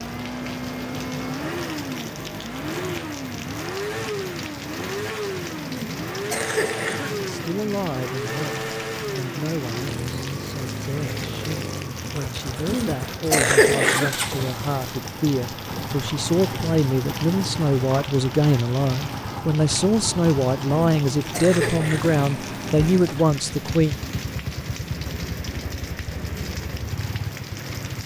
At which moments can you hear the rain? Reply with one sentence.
The rain can be heard from 0.0 to 28.0 s.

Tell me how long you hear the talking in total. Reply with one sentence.
You can hear the talking for 17 seconds altogether.